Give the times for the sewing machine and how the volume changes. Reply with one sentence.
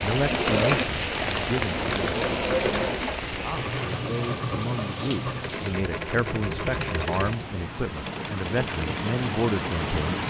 The sewing machine can be heard from 0.1 to 10.2 s, getting quieter.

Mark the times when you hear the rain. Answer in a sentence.
You can hear the rain from 0.0 to 10.2 s.